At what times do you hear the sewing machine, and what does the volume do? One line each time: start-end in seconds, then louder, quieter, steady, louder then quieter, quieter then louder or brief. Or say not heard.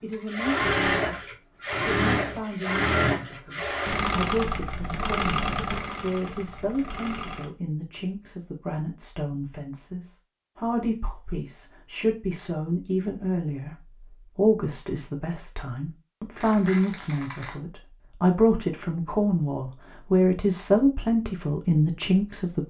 0.0-7.5 quieter.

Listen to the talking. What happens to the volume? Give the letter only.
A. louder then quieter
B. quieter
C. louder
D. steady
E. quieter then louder
C.